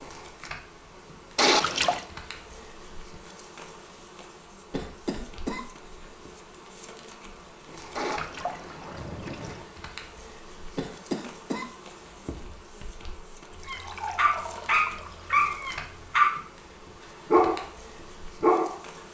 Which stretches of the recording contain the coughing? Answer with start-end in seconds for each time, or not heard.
4.7-6.3, 10.8-12.4.